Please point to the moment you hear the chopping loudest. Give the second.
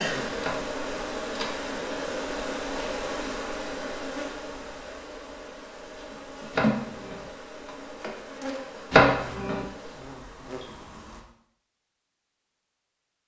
9 s.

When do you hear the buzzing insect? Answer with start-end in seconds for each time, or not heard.
0.0-11.2.